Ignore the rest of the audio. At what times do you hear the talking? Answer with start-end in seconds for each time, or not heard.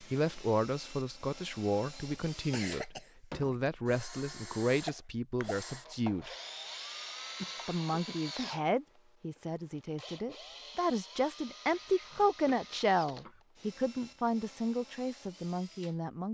0.0-6.3, 7.7-16.2.